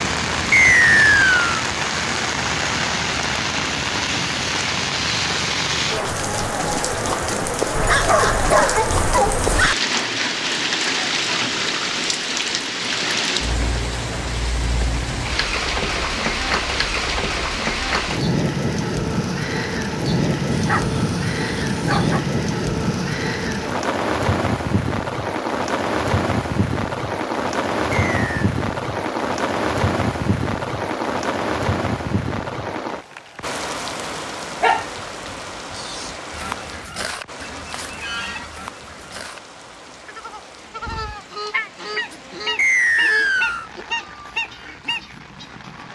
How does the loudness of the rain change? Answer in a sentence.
The volume of the rain goes down.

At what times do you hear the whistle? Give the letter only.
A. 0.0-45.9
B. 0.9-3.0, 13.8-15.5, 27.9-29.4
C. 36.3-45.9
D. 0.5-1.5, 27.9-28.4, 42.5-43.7
D.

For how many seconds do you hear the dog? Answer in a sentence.
You can hear the dog for 5 seconds altogether.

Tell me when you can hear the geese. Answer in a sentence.
The geese can be heard from 36.3 to 45.9 s.